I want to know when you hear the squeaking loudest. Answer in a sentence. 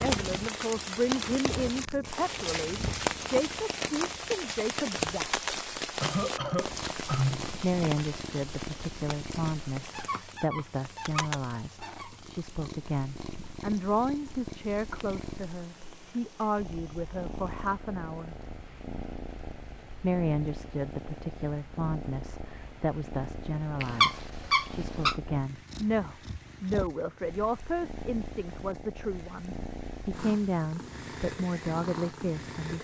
The volume of the squeaking peaks at 24 seconds.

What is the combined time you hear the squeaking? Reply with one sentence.
You can hear the squeaking for 4 seconds altogether.